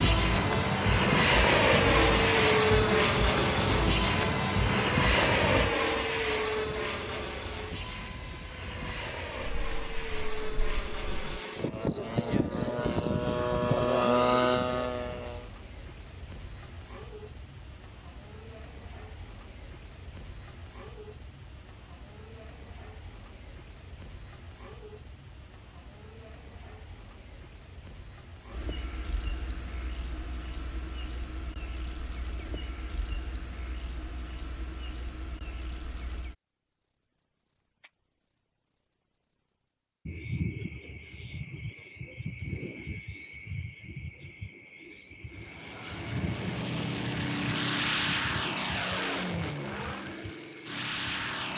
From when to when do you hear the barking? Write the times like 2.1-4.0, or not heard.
not heard.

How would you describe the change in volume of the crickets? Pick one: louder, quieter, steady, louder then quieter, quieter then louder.
quieter.